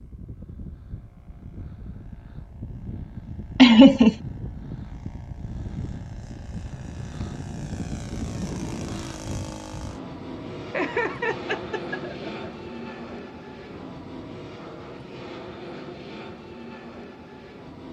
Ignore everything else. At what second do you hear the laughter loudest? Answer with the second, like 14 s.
4 s.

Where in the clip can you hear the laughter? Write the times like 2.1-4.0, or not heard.
3.5-4.2, 10.7-12.5.